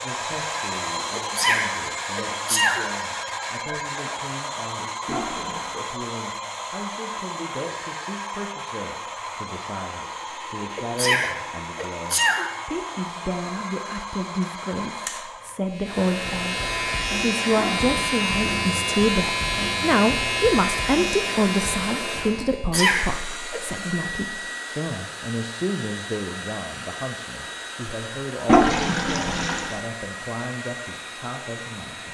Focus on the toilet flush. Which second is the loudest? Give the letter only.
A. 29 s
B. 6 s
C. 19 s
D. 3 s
A.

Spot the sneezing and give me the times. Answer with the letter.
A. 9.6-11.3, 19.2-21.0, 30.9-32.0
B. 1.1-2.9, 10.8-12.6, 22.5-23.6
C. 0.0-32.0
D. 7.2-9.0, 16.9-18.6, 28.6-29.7
B.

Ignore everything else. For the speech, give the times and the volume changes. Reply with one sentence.
The speech can be heard from 0.0 to 32.0 s, getting louder then quieter.